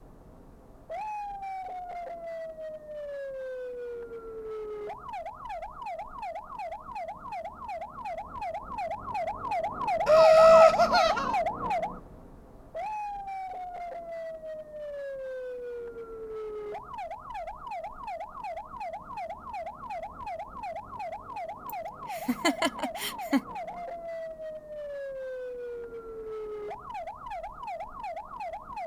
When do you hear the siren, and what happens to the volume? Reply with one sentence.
The siren can be heard from 0.0 to 28.8 s, getting louder then quieter.